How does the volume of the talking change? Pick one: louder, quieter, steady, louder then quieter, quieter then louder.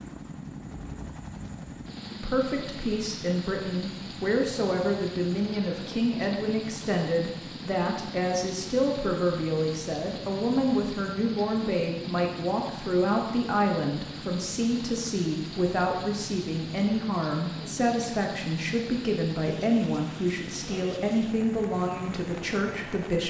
steady.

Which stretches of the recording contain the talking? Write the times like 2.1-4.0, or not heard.
2.2-23.2.